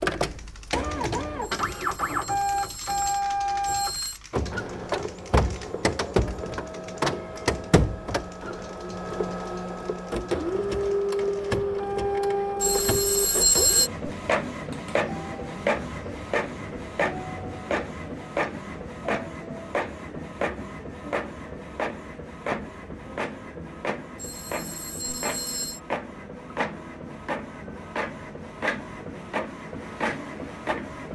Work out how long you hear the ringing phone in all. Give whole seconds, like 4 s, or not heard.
6 s.